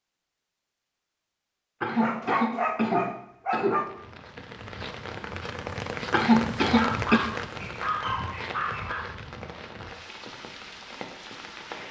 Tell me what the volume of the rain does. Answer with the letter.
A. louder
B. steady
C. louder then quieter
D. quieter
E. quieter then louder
C.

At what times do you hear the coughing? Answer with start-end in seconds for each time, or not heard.
1.8-3.9, 6.1-7.2.